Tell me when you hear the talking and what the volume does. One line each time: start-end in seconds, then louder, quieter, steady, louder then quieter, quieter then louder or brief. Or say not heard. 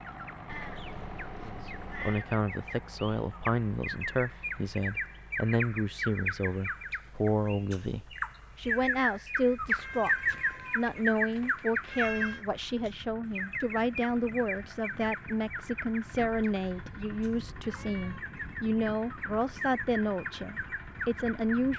1.4-21.7 steady.